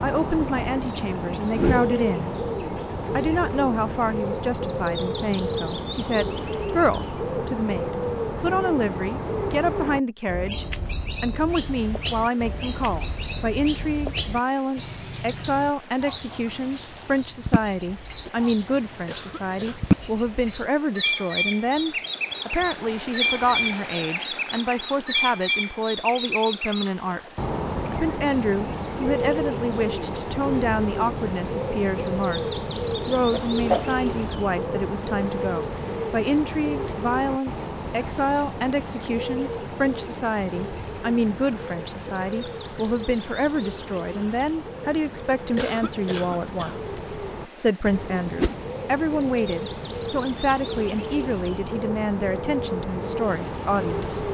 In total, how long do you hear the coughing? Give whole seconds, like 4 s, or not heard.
2 s.